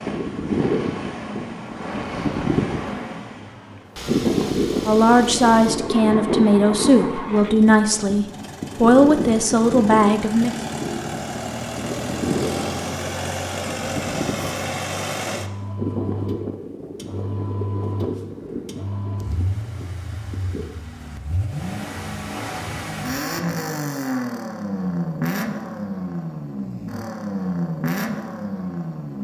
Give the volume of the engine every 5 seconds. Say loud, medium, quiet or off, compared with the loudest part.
medium, medium, loud, medium, loud, loud.